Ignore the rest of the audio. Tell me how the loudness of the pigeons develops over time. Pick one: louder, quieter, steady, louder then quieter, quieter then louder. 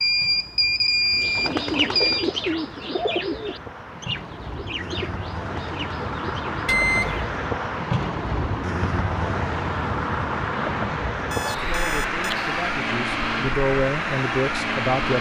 quieter.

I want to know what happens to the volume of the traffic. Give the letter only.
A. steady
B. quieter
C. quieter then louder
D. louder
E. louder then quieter
D.